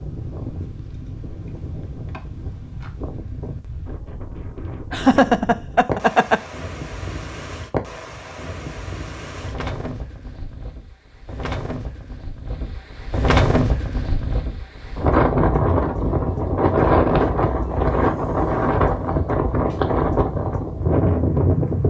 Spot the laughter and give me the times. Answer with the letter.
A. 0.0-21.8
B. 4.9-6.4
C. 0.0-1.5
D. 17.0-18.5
B.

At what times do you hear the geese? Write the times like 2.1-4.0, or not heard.
not heard.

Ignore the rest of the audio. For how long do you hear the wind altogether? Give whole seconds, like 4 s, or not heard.
22 s.